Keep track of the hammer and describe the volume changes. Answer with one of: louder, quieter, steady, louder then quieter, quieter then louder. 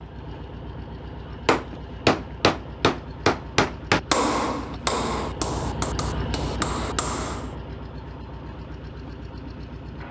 quieter.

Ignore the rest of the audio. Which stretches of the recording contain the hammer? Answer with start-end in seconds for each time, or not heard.
1.4-7.5.